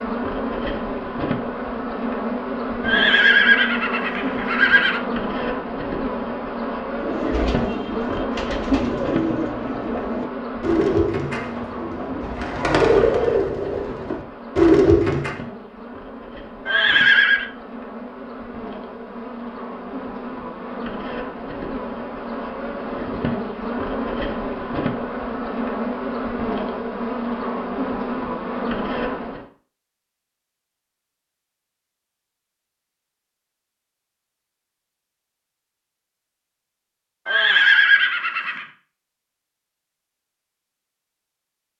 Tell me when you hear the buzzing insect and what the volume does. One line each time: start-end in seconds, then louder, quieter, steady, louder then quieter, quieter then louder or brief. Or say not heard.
0.0-29.4 quieter then louder.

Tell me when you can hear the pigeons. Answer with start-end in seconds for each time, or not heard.
7.0-15.4.